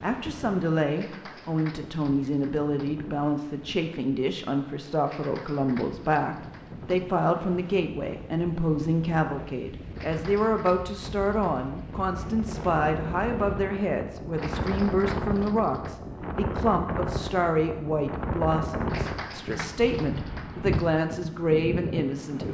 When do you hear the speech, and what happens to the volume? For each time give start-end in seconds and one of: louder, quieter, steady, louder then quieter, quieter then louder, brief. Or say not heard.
0.0-22.4 steady.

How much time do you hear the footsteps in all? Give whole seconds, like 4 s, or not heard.
not heard.